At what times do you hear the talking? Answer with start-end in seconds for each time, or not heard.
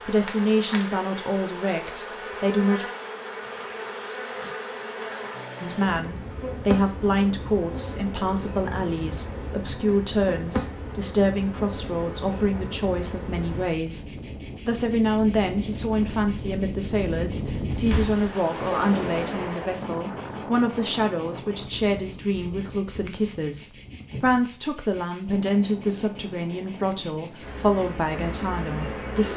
0.0-2.9, 5.6-14.1, 14.7-29.3.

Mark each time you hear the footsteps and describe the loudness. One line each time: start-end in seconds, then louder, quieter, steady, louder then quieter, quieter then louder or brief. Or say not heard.
not heard.